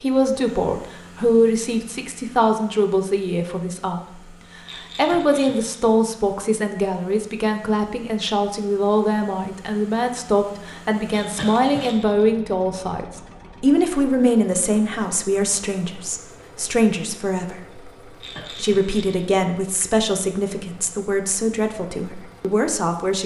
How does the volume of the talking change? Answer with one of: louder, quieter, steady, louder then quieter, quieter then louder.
steady.